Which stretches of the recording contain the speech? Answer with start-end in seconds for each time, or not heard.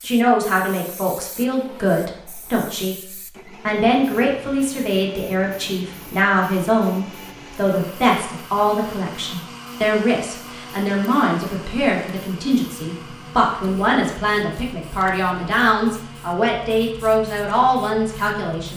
0.0-18.7.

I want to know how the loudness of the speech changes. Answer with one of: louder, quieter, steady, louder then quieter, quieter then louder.
steady.